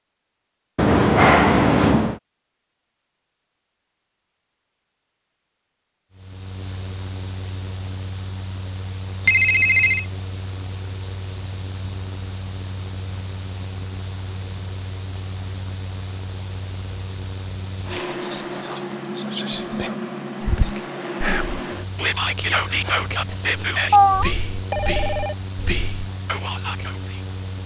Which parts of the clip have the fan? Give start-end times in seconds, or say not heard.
6.1-27.6.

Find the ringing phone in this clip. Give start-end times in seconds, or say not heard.
0.8-2.1, 9.2-10.1, 23.9-25.4.